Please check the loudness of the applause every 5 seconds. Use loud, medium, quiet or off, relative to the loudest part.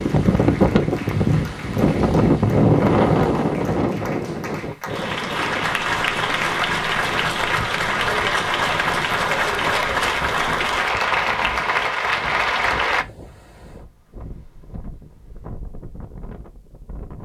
quiet, loud, loud, off.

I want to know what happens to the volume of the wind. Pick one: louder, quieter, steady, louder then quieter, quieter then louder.
quieter.